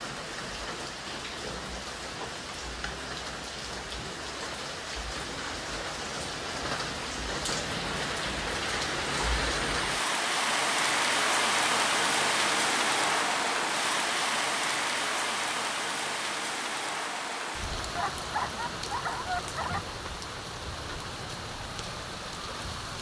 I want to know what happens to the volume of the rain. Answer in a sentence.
The volume of the rain goes up, then down.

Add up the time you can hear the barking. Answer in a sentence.
The barking can be heard for 2 seconds in total.